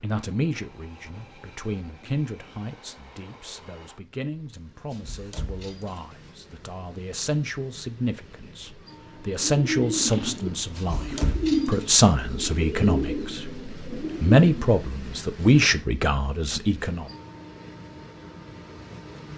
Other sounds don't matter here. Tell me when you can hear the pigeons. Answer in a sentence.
You can hear the pigeons from 9.4 to 14.7 s.